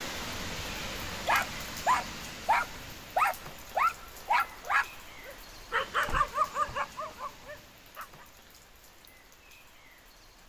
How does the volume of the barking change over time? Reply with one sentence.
The loudness of the barking goes down.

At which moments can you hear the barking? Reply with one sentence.
You can hear the barking from 0.8 to 8.2 s.